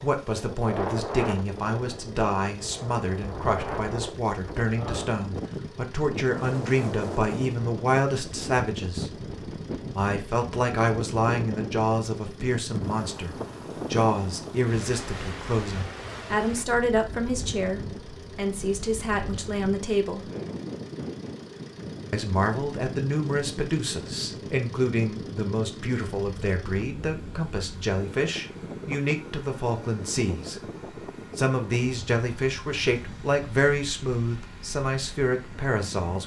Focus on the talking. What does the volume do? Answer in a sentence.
The loudness of the talking stays about the same.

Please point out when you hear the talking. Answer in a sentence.
You can hear the talking from 0.0 to 9.1 s, from 9.9 to 20.2 s, from 22.1 to 30.6 s and from 31.4 to 36.2 s.